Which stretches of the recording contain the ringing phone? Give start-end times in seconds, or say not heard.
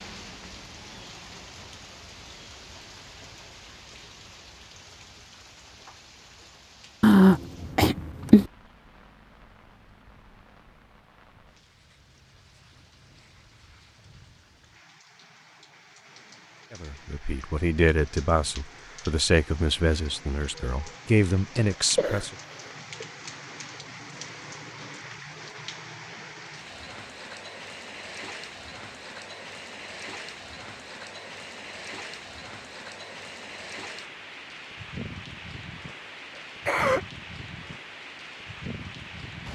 not heard.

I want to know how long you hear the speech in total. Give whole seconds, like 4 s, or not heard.
6 s.